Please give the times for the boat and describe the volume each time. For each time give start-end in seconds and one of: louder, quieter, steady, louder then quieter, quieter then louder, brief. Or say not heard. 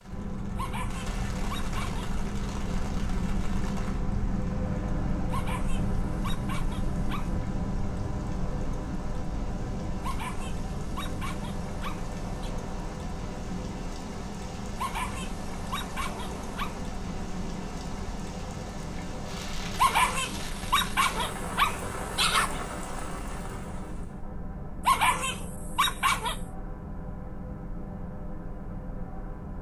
0.0-29.5 quieter.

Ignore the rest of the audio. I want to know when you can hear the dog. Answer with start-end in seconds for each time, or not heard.
0.6-2.0, 5.3-7.3, 10.0-12.5, 14.8-16.8, 19.8-22.6, 24.9-26.4.